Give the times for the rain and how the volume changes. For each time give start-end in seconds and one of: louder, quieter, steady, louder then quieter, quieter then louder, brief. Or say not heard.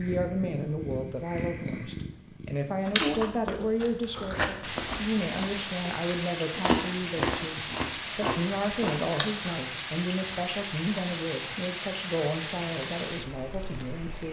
4.6-14.2 steady.